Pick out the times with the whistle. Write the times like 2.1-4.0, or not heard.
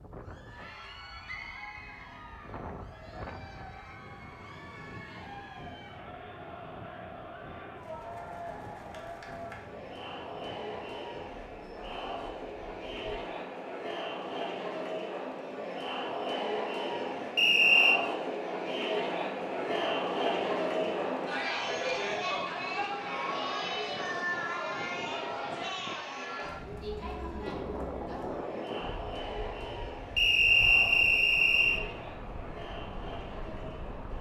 1.2-2.1, 17.4-17.9, 30.1-31.8.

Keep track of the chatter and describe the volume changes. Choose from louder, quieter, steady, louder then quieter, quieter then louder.
louder then quieter.